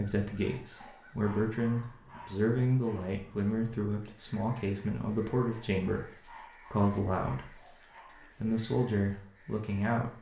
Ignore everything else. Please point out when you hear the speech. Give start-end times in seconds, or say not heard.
0.0-10.1.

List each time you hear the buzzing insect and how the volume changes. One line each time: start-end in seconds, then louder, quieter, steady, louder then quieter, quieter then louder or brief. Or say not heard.
not heard.